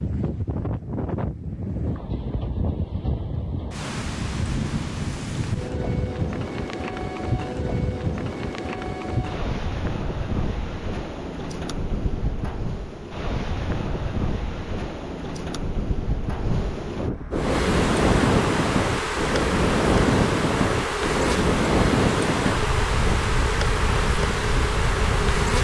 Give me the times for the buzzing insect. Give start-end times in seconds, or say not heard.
17.3-25.5.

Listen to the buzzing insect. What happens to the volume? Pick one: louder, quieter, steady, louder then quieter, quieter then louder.
steady.